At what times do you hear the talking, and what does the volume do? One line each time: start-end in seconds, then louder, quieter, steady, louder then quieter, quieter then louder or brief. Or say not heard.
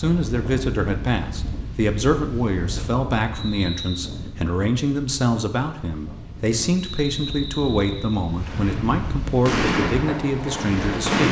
0.0-11.2 steady.